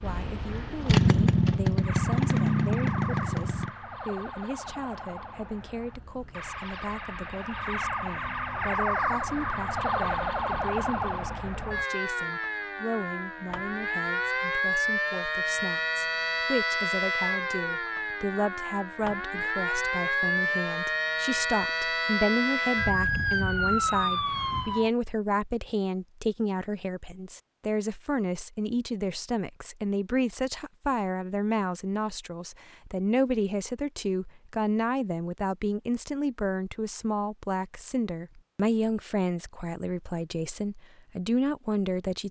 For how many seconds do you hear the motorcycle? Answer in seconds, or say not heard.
4 s.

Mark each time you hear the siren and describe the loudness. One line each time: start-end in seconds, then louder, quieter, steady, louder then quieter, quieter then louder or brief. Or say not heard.
1.8-24.9 louder.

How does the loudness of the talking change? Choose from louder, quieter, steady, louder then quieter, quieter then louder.
louder.